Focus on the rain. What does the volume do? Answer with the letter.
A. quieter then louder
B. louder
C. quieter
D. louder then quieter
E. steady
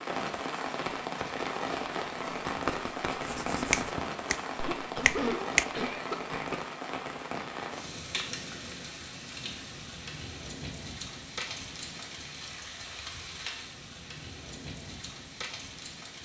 C.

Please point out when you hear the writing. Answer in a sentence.
You can hear the writing from 2.2 to 4.1 s.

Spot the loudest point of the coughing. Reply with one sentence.
The volume of the coughing peaks at 5 seconds.